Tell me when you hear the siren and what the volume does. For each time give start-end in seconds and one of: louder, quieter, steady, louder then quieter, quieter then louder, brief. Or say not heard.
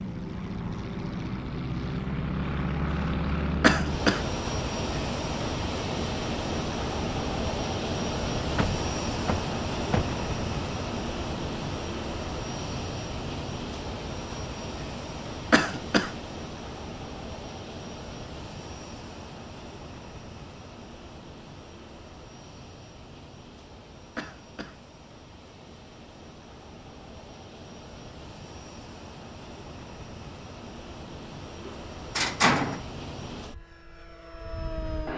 not heard.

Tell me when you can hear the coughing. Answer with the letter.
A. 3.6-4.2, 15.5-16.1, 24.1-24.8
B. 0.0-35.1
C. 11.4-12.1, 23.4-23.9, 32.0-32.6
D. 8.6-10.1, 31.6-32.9
A.